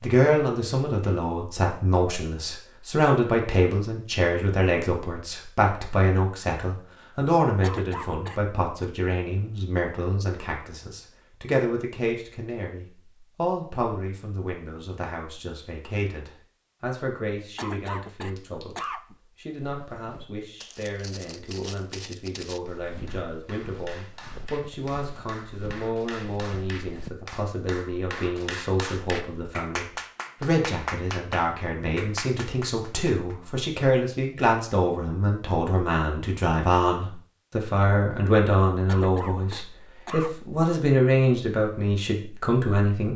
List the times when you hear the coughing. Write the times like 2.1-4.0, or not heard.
7.6-8.8, 17.6-19.1, 38.9-40.5.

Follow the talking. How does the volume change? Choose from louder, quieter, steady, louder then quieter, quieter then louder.
quieter then louder.